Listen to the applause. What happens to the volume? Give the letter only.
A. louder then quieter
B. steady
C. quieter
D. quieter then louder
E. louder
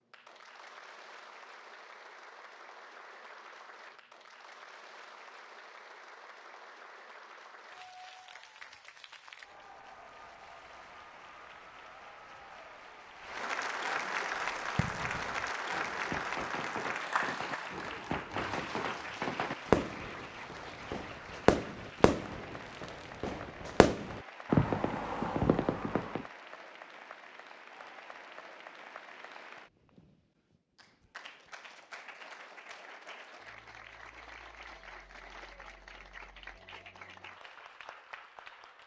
A.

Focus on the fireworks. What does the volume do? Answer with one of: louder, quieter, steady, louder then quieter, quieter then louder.
louder.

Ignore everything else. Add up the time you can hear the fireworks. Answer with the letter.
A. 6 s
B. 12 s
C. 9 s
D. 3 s
B.